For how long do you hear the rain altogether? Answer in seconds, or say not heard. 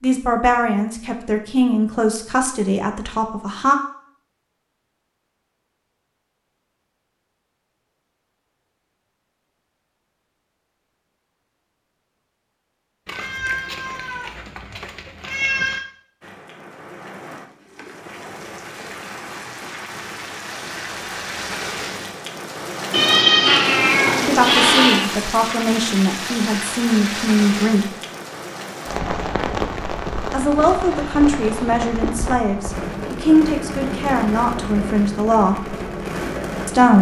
21 s.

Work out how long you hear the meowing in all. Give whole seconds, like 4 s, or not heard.
5 s.